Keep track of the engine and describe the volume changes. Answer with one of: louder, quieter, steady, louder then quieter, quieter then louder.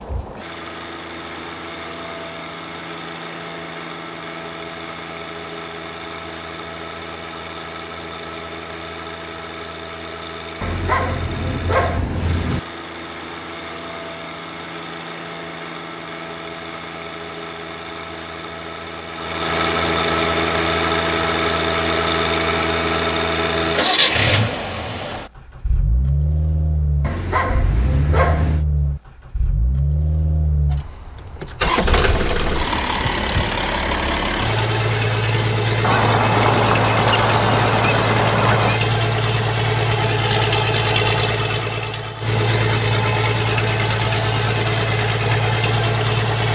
louder.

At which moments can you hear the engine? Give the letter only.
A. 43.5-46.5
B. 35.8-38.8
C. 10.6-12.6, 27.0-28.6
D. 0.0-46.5
D.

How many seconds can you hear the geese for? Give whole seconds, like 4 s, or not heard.
3 s.